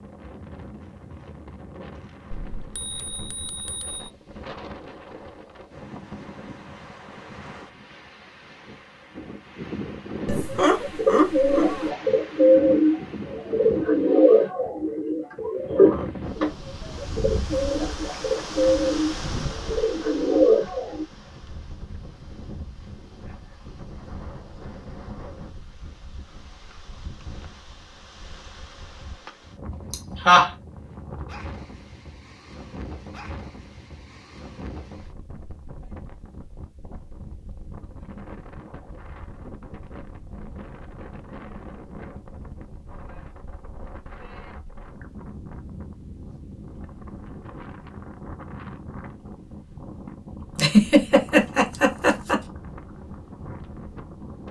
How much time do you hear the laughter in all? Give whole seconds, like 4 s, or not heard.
4 s.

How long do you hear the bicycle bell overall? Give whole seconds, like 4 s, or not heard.
2 s.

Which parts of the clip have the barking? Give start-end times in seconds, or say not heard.
not heard.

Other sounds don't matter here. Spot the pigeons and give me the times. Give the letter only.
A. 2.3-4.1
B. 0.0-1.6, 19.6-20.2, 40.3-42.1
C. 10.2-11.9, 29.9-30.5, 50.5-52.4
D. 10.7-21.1
D.